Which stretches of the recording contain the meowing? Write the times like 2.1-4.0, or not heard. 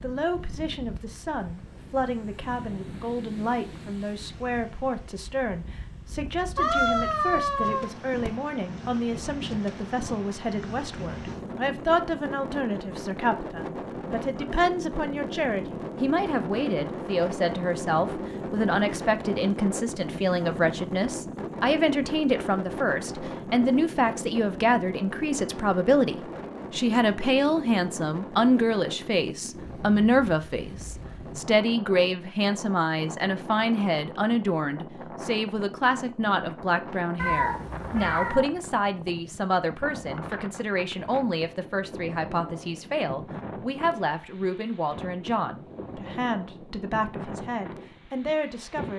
6.5-8.3, 37.1-38.5.